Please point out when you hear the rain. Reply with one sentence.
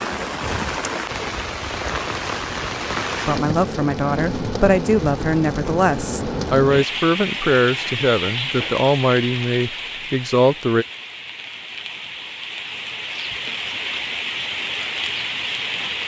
The rain can be heard from 0.0 to 16.0 s.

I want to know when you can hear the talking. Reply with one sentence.
The talking can be heard from 3.2 to 10.8 s.